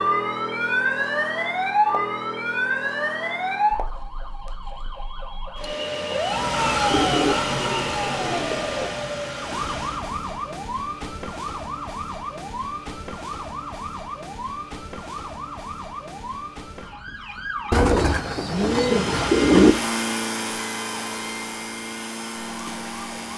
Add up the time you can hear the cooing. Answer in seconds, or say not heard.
4 s.